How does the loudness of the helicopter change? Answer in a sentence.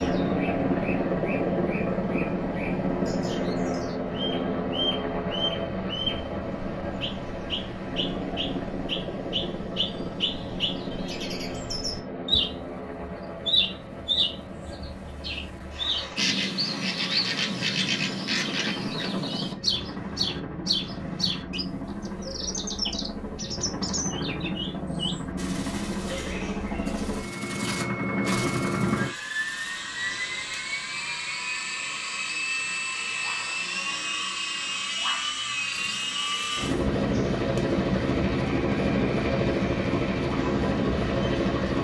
The volume of the helicopter goes down, then up.